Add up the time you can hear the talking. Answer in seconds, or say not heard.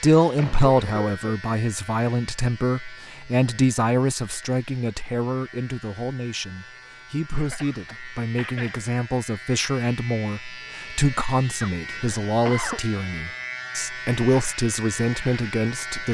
16 s.